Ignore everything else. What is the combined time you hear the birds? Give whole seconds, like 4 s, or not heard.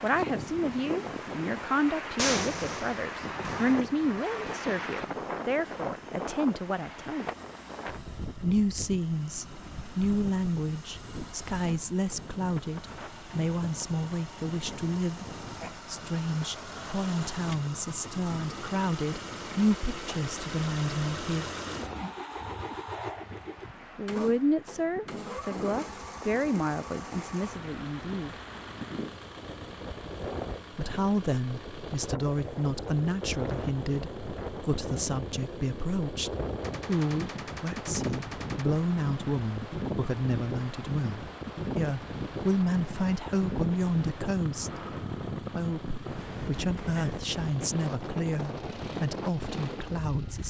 not heard.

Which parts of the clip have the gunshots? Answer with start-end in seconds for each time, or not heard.
2.1-3.8, 36.6-38.6.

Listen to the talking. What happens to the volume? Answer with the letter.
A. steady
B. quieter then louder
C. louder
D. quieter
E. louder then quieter
A.